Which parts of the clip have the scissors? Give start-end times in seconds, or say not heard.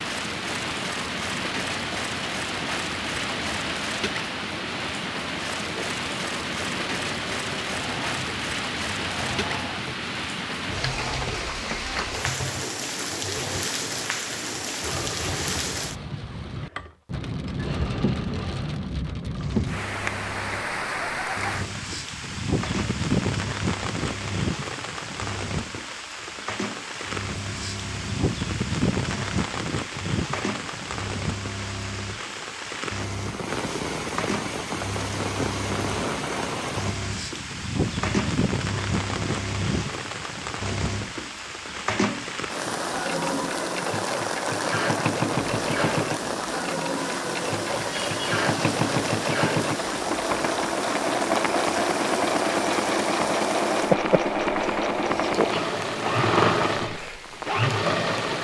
not heard.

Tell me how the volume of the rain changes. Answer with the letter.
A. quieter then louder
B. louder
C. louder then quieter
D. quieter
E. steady
E.